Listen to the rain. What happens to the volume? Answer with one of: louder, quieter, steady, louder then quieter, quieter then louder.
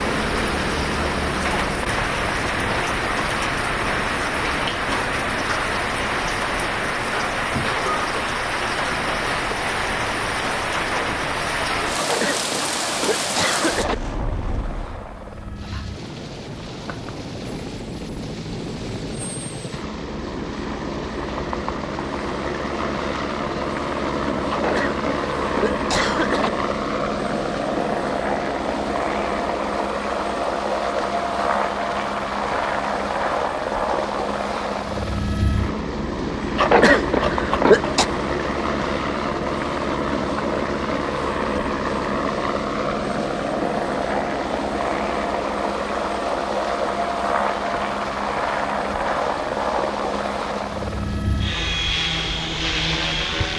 quieter.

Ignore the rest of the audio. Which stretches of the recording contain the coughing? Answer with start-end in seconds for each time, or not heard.
11.9-13.9, 24.5-26.5, 36.5-38.0.